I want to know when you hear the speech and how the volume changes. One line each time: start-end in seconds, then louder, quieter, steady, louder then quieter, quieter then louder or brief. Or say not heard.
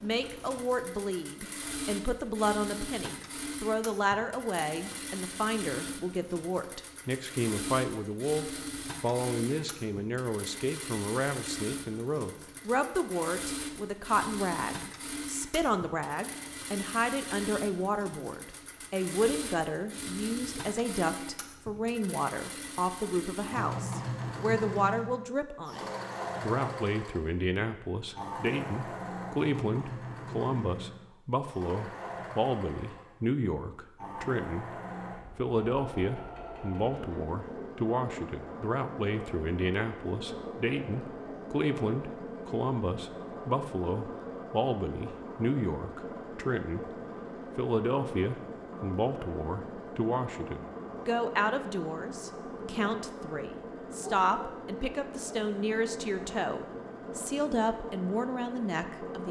0.0-46.9 steady
47.5-59.2 steady.